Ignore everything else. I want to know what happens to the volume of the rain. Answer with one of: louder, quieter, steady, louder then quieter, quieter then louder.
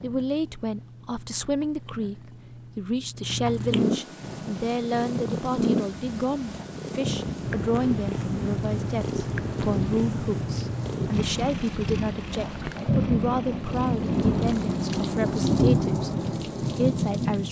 louder.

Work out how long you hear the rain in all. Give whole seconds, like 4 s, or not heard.
13 s.